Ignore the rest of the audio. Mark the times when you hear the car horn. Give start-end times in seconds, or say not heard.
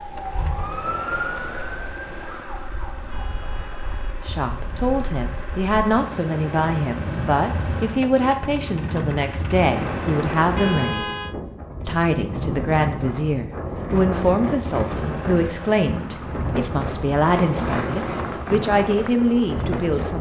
3.0-4.2, 10.4-11.3.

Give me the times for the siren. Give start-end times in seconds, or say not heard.
0.0-4.0.